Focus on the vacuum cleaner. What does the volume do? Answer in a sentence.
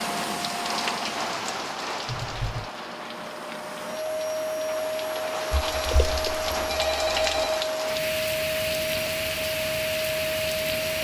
The volume of the vacuum cleaner goes up.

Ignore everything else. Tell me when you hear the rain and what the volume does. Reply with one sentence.
The rain can be heard from 0.0 to 10.9 s, getting quieter then louder.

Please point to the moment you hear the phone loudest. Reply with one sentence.
The volume of the phone peaks at 7 seconds.